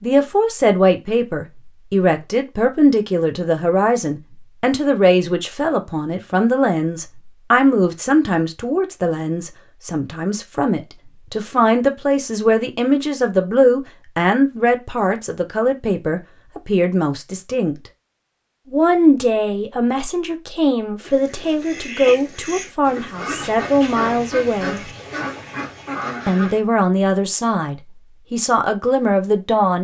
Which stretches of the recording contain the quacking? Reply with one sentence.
You can hear the quacking from 21.0 to 26.6 s.